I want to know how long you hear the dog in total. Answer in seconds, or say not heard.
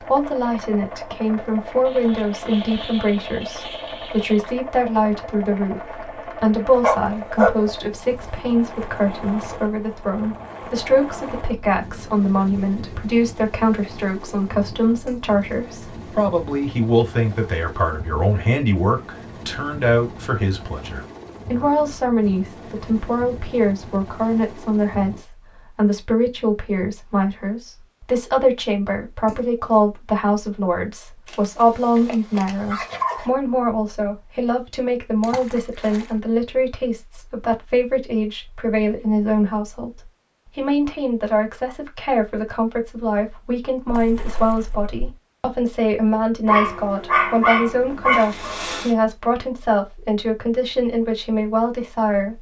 6 s.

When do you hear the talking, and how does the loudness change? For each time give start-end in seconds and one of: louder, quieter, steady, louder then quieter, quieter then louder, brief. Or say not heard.
0.1-52.3 steady.